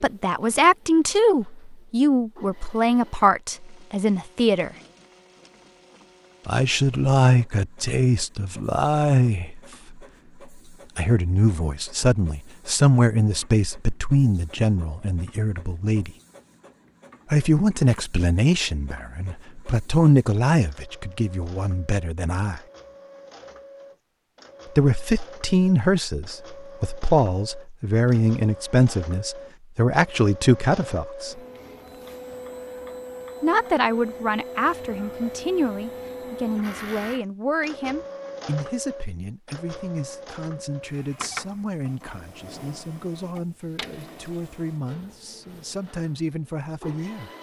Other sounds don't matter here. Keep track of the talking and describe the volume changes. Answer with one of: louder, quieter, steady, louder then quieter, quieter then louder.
quieter.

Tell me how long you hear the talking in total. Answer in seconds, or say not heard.
39 s.